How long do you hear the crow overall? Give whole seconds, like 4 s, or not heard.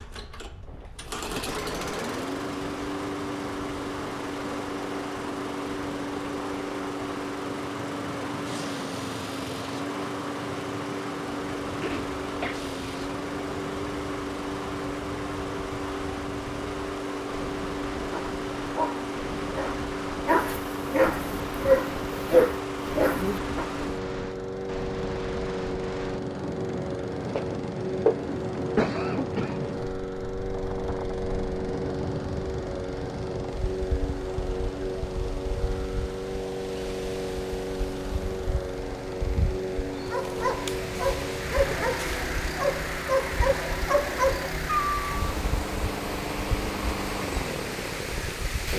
not heard.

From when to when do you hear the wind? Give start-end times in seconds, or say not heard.
0.0-48.7.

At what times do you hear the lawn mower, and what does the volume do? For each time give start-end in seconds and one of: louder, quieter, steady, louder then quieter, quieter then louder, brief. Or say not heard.
0.0-48.7 steady.